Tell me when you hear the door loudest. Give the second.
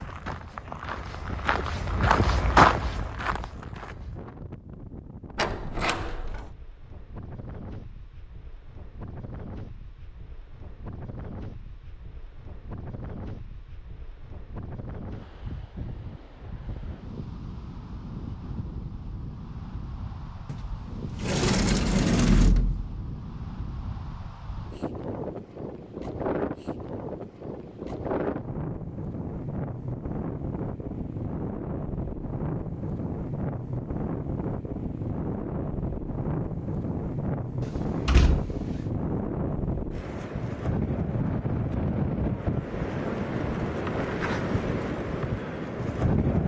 22 s.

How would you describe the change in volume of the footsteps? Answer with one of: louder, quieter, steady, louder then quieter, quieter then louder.
louder then quieter.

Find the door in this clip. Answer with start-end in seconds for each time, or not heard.
5.3-6.5, 20.4-22.9, 37.6-38.8.